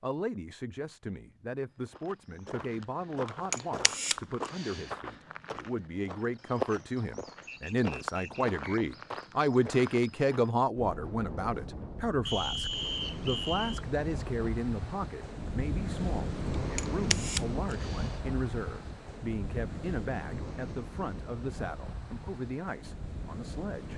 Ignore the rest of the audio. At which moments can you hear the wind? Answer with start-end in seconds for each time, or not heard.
10.8-23.9.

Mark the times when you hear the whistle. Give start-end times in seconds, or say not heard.
7.5-8.8, 12.2-13.8.